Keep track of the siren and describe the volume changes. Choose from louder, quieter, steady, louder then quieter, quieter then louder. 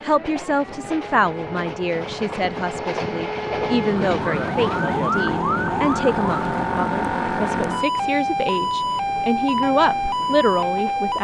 louder.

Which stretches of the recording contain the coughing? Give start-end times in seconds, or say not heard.
not heard.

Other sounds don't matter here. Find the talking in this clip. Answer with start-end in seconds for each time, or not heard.
0.0-11.1.